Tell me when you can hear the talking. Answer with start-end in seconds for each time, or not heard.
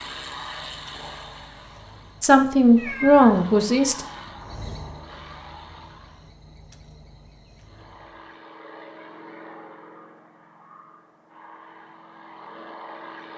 2.2-4.0.